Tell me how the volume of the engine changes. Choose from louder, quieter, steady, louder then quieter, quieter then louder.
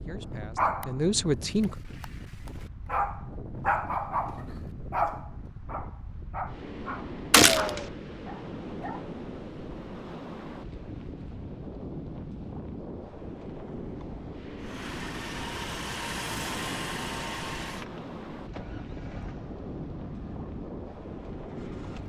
quieter.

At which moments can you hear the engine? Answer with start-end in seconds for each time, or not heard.
14.6-22.0.